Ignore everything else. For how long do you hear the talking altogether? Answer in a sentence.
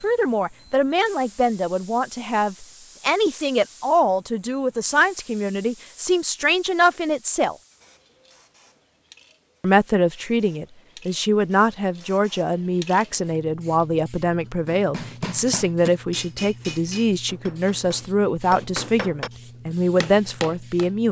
The talking can be heard for 19 seconds in total.